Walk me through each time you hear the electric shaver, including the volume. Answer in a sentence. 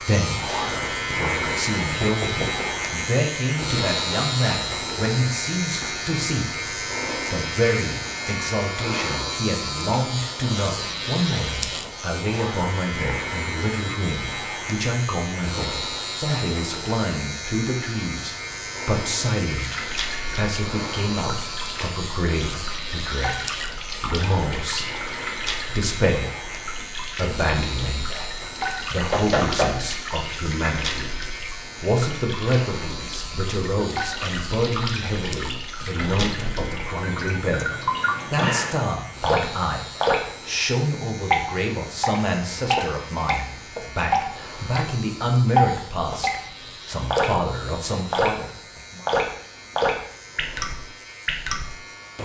The electric shaver can be heard from 0.0 to 52.2 s, getting quieter.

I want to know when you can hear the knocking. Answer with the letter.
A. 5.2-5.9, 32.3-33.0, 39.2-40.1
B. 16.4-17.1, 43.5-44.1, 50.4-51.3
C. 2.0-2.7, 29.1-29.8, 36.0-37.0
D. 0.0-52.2
C.